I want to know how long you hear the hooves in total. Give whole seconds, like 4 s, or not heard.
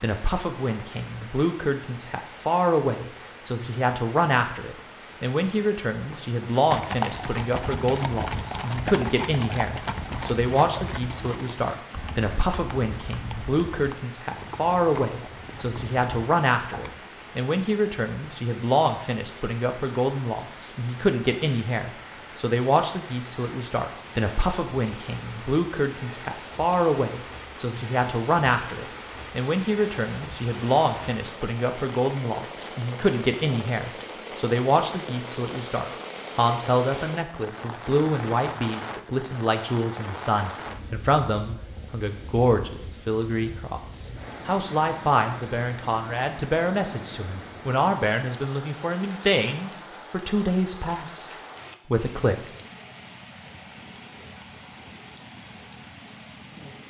10 s.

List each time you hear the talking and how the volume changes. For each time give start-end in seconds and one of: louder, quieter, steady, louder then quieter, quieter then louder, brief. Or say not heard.
0.0-52.4 steady.